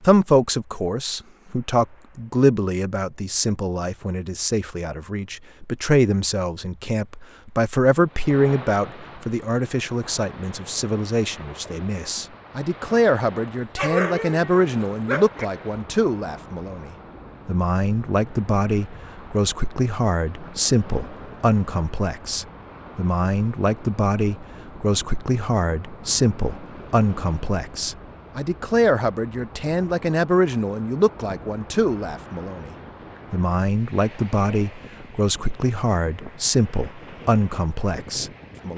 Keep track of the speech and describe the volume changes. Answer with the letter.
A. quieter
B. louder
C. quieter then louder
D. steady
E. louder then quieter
D.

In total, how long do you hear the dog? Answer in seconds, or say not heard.
2 s.